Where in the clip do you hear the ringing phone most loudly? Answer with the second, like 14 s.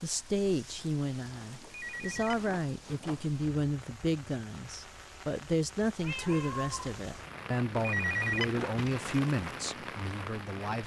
8 s.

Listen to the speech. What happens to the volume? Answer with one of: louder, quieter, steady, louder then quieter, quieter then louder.
steady.